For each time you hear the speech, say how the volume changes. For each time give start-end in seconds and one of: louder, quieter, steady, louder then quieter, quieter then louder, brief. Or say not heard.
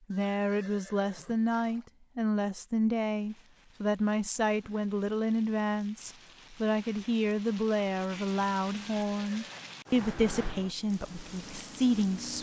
0.1-12.3 steady.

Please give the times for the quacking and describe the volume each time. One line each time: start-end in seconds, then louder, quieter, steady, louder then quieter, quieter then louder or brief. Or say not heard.
not heard.